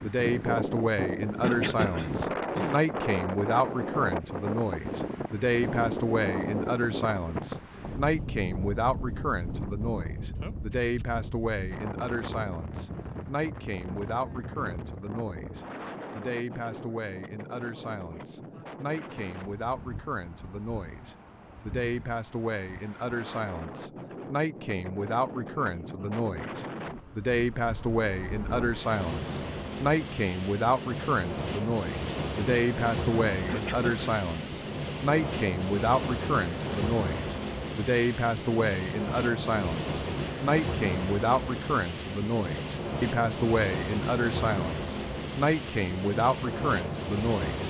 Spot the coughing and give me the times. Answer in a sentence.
The coughing can be heard from 1.4 to 2.8 s and from 33.5 to 34.2 s.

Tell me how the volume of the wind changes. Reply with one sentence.
The volume of the wind goes down, then up.